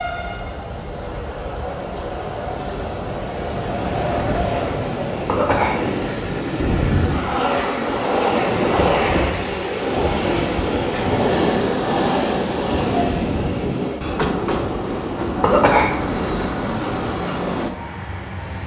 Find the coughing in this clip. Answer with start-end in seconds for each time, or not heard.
5.2-6.3, 15.4-16.5.